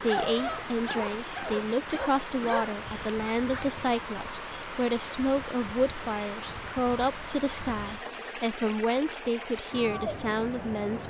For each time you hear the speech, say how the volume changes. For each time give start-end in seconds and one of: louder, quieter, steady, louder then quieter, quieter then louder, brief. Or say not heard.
0.0-11.0 steady.